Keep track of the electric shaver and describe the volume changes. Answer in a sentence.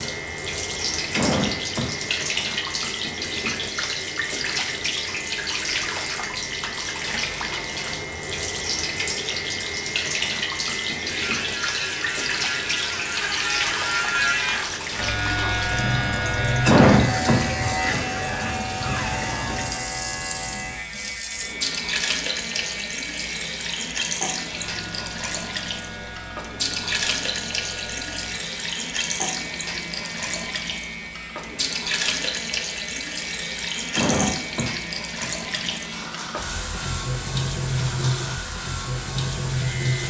The volume of the electric shaver goes up, then down.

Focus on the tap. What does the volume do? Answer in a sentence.
The loudness of the tap stays about the same.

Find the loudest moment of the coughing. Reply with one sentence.
The volume of the coughing peaks at 17 seconds.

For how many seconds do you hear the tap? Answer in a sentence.
The tap can be heard for 40 seconds in total.